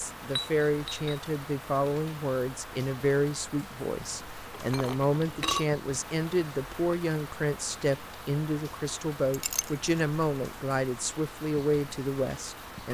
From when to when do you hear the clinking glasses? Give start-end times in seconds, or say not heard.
0.3-1.2, 4.5-5.7, 9.3-10.0.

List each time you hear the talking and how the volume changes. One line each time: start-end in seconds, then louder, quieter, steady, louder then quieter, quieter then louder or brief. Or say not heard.
0.0-12.8 steady.